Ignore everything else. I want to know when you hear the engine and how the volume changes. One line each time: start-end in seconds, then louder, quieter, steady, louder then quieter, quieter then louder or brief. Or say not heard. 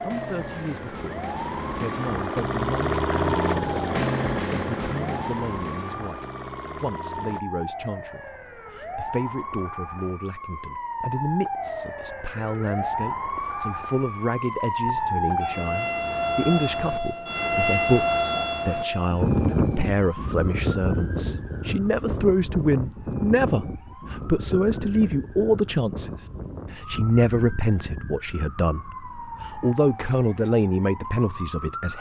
0.0-7.5 louder then quieter.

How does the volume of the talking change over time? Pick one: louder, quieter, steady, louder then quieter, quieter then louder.
louder.